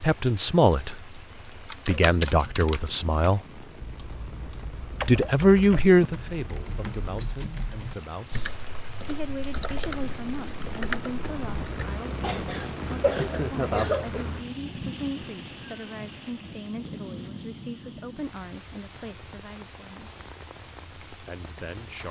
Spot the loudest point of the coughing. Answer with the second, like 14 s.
14 s.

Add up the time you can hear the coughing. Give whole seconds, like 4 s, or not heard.
2 s.